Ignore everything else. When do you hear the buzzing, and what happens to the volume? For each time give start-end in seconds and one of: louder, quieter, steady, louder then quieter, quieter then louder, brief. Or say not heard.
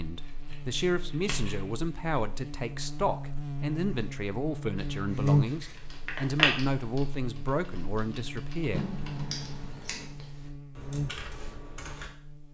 0.0-12.4 louder then quieter.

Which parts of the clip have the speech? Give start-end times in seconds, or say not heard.
0.0-8.9.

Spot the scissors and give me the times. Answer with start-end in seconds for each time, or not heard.
0.5-1.6, 4.8-6.7, 8.7-10.1.